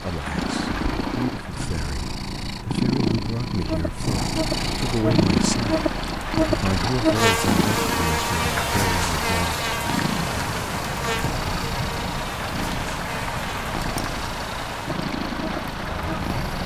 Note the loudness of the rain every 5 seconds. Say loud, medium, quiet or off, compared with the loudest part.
medium, loud, loud, loud.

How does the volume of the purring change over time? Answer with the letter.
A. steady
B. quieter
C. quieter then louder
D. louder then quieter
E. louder
B.